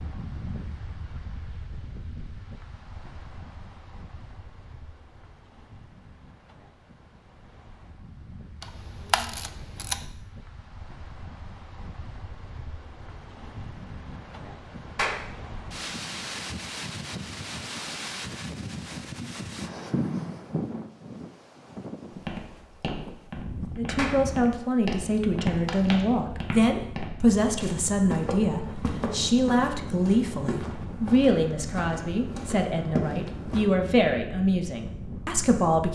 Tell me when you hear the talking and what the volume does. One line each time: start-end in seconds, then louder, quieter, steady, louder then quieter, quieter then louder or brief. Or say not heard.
23.8-35.8 steady.